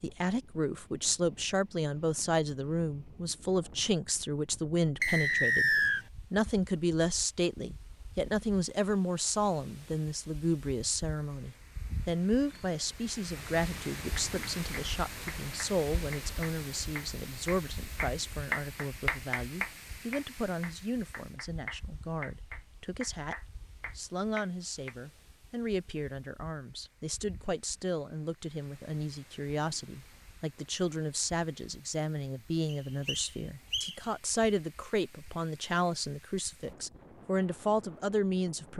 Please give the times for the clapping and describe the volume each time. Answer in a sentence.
The clapping can be heard from 14.2 to 24.9 s, getting louder then quieter.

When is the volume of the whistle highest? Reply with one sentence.
The loudest moment of the whistle is at 6 seconds.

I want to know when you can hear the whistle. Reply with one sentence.
You can hear the whistle from 5.0 to 6.0 s and from 32.7 to 34.0 s.